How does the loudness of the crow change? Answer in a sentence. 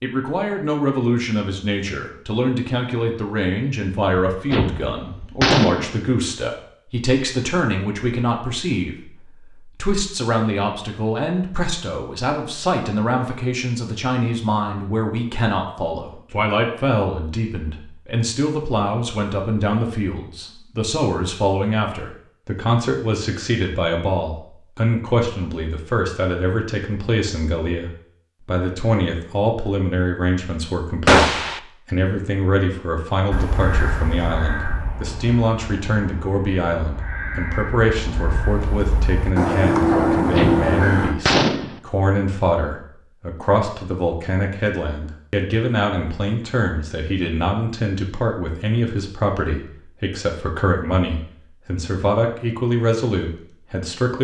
The volume of the crow goes down, then up.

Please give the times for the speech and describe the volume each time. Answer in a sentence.
You can hear the speech from 0.0 to 54.2 s, at a steady volume.